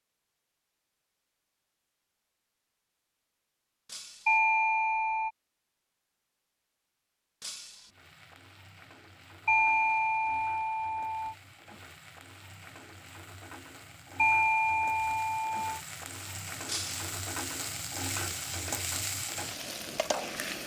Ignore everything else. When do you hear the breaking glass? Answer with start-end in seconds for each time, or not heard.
3.9-4.4, 7.4-7.9, 16.6-17.1.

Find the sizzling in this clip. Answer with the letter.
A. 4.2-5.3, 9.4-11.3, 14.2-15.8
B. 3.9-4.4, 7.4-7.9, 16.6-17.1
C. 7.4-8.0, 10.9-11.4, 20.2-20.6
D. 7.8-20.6
D.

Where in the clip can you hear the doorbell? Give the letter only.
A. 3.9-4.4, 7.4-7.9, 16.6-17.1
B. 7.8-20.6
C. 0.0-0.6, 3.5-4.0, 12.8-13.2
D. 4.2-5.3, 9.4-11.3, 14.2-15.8
D.